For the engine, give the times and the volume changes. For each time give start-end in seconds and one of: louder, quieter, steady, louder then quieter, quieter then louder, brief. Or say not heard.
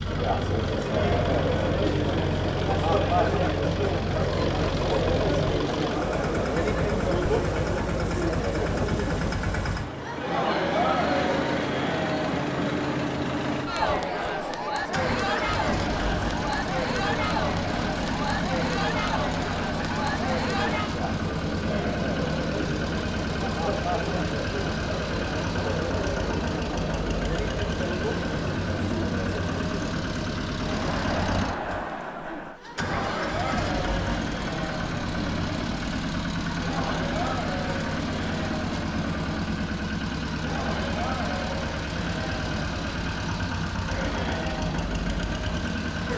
0.0-46.1 steady.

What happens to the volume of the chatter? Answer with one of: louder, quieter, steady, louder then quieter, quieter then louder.
quieter.